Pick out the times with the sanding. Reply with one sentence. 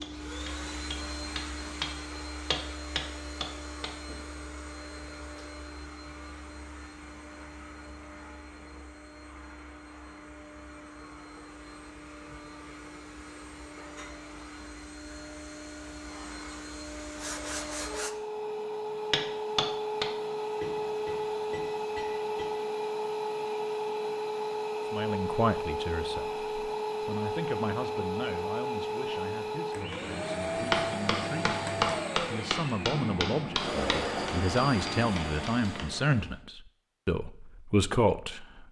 The sanding can be heard from 17.1 to 18.2 s.